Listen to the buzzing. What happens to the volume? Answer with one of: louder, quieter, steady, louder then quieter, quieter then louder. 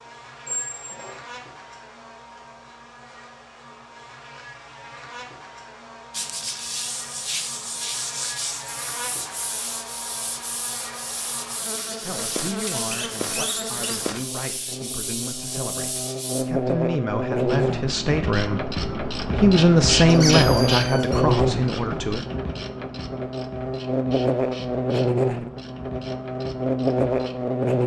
louder.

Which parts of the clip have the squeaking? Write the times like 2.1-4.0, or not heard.
0.5-1.2, 12.6-13.8, 20.1-21.2.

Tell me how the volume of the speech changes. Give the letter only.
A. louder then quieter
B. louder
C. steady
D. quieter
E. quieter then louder
B.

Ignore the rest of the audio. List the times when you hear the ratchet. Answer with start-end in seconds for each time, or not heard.
17.4-27.4.